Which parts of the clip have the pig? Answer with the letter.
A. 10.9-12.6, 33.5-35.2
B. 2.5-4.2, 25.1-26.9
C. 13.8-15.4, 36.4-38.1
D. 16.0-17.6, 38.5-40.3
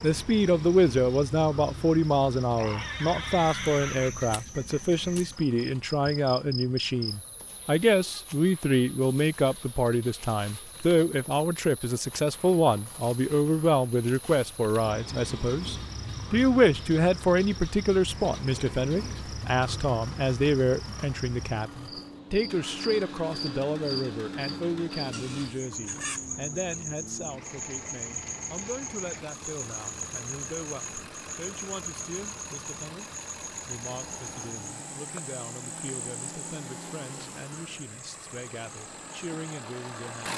B.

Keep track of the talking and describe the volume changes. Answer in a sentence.
The loudness of the talking goes down.